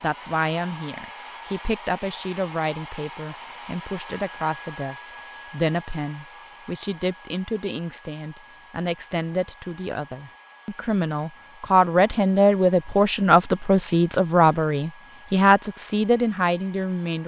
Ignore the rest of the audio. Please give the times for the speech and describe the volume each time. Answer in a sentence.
The speech can be heard from 0.0 to 17.2 s, getting louder.